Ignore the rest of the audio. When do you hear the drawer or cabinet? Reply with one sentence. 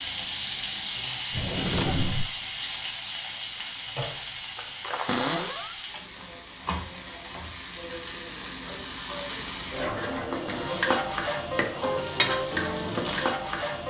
The drawer or cabinet can be heard from 1.3 to 2.3 s, from 5.0 to 5.8 s and from 10.4 to 10.9 s.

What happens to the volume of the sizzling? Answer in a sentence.
The volume of the sizzling goes down, then up.